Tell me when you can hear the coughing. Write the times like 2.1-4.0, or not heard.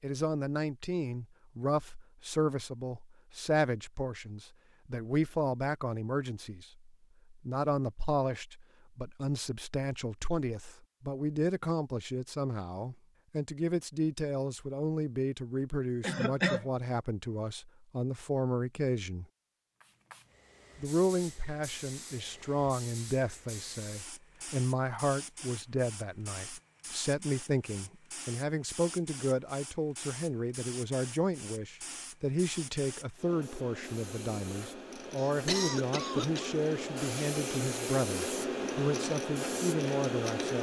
16.0-16.6, 35.1-36.6.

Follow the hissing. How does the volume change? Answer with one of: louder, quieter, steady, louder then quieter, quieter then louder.
louder.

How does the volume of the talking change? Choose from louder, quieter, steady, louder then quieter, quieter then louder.
steady.